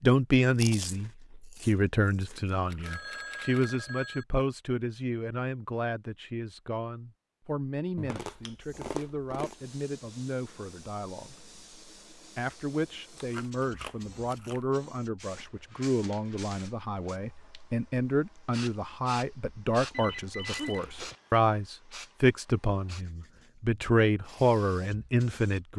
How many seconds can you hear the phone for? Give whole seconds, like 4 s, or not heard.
3 s.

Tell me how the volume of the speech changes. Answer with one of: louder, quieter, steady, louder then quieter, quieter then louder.
quieter then louder.